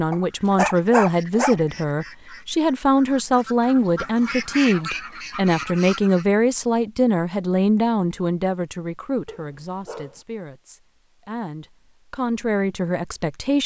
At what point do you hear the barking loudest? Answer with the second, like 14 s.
1 s.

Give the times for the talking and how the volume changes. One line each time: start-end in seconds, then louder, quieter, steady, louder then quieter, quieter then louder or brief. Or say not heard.
0.0-13.6 quieter.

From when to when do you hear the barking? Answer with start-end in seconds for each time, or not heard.
0.1-1.6, 9.2-10.2.